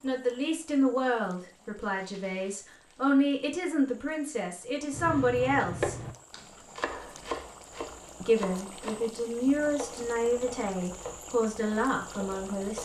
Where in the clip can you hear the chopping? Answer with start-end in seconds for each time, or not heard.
4.9-12.8.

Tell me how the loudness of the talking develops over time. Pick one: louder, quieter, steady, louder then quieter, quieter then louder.
steady.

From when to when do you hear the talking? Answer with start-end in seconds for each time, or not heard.
0.0-6.0, 8.2-12.8.